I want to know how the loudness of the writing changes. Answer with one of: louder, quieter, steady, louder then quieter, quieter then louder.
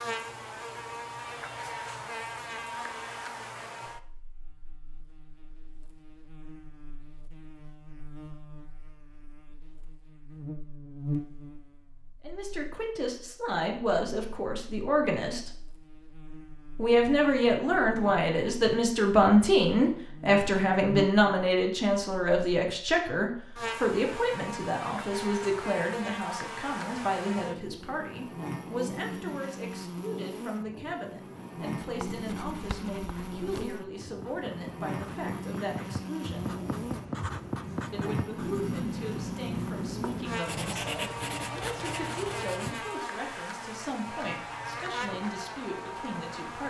louder.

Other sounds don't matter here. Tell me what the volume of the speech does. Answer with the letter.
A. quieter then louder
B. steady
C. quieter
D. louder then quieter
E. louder
C.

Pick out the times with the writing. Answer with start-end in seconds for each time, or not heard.
31.9-43.0.